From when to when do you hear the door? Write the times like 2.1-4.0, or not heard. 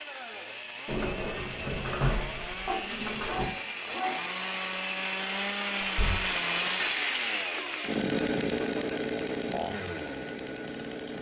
0.8-3.5, 5.8-6.3.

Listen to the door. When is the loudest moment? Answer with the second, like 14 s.
2 s.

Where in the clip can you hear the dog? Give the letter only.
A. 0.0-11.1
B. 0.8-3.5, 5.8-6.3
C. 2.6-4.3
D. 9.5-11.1
C.